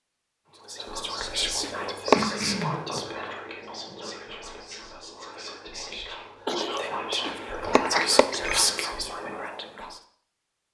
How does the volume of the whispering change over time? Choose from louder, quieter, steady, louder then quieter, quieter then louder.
quieter then louder.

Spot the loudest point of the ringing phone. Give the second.
2 s.